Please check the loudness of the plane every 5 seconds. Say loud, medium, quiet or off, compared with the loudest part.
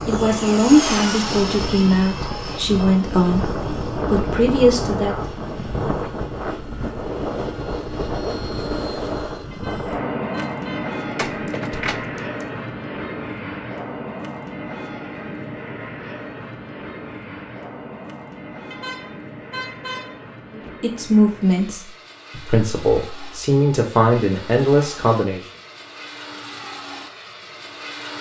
loud, loud, loud, medium, quiet, medium.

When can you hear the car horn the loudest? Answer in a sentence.
The loudest moment of the car horn is at 20 seconds.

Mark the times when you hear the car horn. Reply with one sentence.
The car horn can be heard from 9.5 to 10.9 s and from 18.7 to 20.7 s.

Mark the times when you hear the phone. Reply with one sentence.
You can't hear the phone here.